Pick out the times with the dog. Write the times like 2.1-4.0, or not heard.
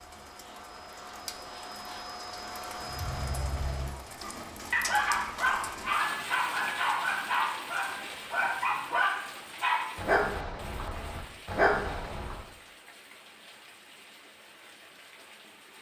2.8-12.4.